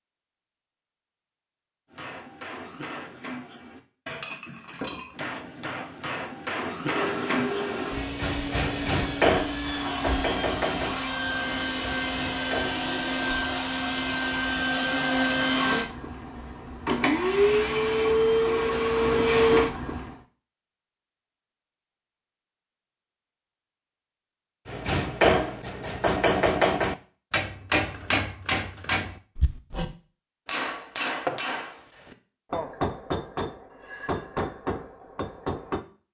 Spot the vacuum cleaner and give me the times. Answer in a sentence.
You can hear the vacuum cleaner from 6.8 to 20.2 s.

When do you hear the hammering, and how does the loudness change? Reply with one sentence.
You can hear the hammering from 1.9 to 12.8 s, getting louder then quieter; and from 24.6 to 35.9 s, getting quieter.